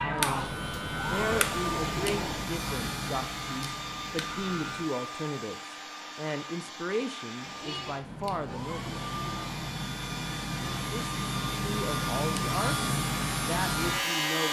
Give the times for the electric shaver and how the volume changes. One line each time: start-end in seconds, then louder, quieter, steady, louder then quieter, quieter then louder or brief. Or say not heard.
0.0-4.9 quieter
8.0-14.4 louder.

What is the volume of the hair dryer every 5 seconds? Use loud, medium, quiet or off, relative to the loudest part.
loud, medium, loud.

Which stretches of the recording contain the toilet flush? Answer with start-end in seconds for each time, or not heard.
0.2-2.5, 7.5-9.7.